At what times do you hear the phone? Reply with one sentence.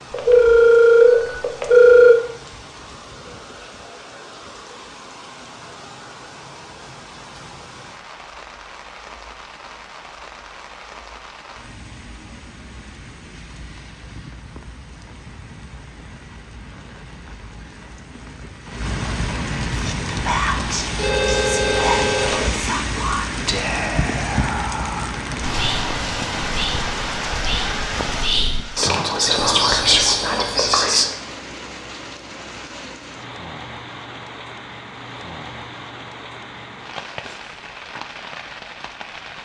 You can hear the phone from 0.1 to 2.1 s, from 20.9 to 22.6 s and from 29.2 to 30.7 s.